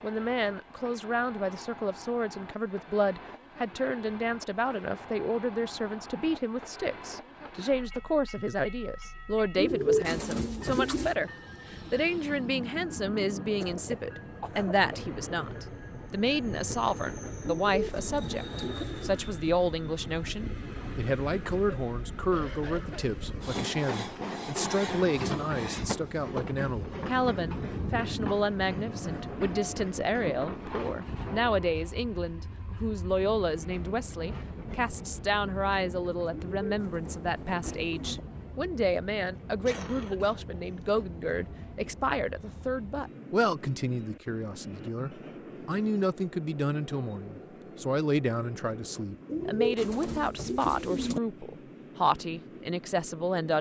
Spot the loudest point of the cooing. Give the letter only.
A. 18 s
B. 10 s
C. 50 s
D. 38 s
B.